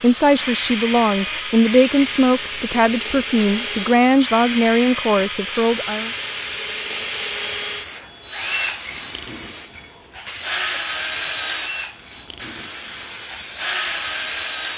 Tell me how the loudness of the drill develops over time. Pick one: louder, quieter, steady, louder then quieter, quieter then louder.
steady.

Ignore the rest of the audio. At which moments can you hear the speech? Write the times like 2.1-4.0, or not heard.
0.0-6.1.